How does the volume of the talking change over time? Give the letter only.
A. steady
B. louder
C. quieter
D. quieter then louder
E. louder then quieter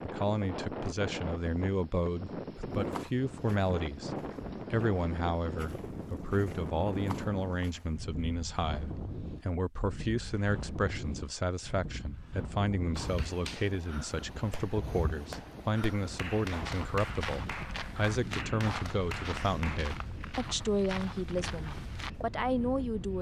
A.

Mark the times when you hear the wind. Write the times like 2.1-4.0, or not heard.
0.0-23.1.